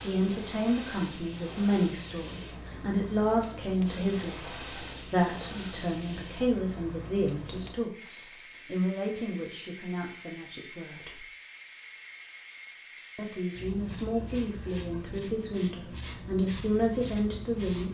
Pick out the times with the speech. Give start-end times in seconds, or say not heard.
0.0-11.2, 13.2-17.8.